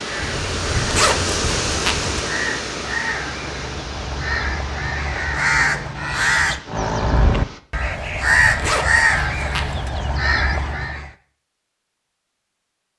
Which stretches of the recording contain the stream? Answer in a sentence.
The stream can be heard from 0.0 to 7.6 s.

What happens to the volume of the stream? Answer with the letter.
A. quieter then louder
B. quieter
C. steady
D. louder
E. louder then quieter
B.